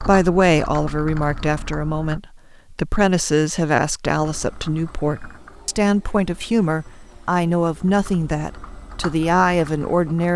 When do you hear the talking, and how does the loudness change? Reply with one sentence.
You can hear the talking from 0.0 to 10.3 s, at a steady volume.